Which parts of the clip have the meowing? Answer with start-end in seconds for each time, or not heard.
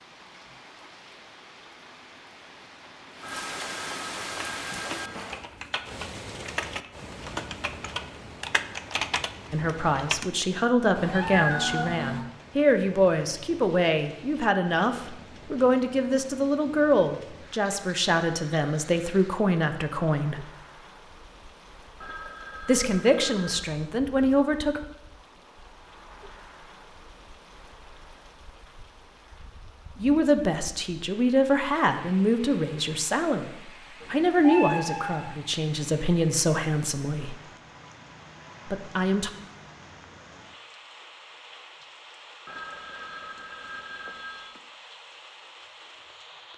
10.9-12.2, 34.0-35.4.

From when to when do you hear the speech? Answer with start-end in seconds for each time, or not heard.
9.5-20.4, 22.6-24.8, 29.9-33.5, 34.1-37.4, 38.7-39.3.